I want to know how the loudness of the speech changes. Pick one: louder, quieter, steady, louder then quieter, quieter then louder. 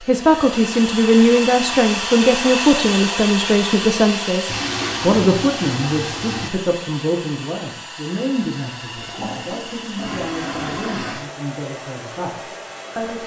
quieter.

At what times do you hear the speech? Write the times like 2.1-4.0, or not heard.
0.1-13.2.